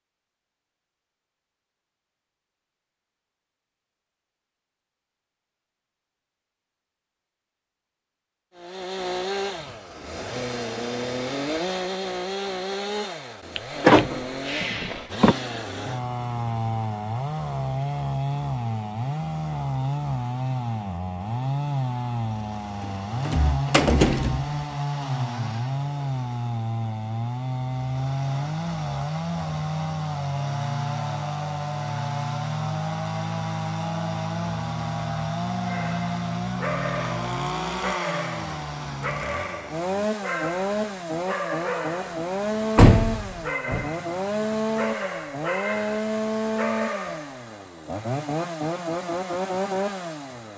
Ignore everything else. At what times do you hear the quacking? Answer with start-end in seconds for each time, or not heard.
not heard.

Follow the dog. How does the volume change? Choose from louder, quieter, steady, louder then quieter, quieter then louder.
steady.